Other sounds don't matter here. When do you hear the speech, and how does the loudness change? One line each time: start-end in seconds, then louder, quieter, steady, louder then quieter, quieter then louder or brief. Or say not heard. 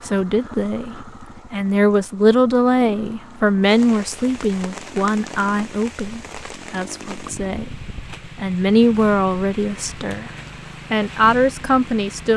0.0-10.3 quieter then louder
10.9-12.3 brief.